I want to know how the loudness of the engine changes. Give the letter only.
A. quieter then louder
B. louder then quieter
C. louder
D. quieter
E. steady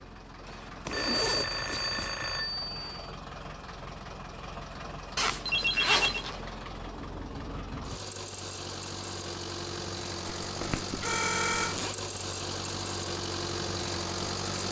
C.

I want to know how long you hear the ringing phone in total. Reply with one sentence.
The ringing phone can be heard for 4 seconds in total.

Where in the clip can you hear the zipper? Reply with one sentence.
The zipper can be heard from 0.8 to 2.4 s, from 5.2 to 6.4 s and from 10.2 to 11.9 s.